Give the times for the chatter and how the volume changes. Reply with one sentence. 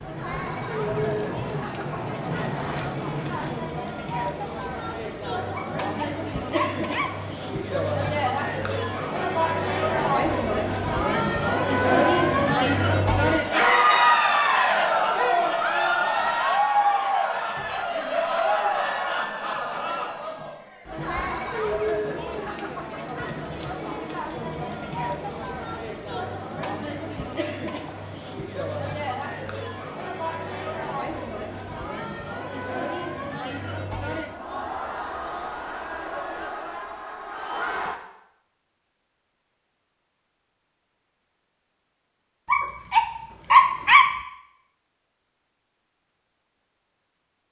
The chatter can be heard from 0.0 to 38.0 s, getting louder then quieter.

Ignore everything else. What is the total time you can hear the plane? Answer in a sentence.
The plane can be heard for 4 seconds in total.